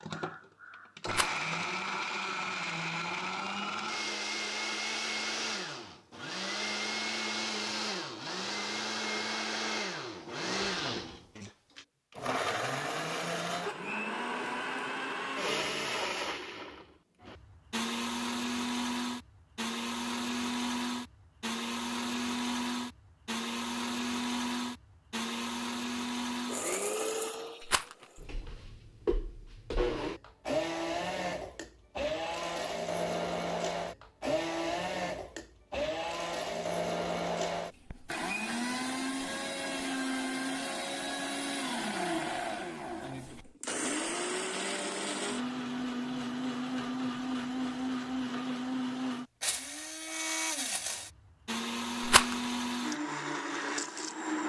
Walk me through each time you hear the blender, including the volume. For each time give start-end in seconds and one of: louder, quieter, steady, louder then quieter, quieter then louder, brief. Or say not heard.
0.0-54.4 steady.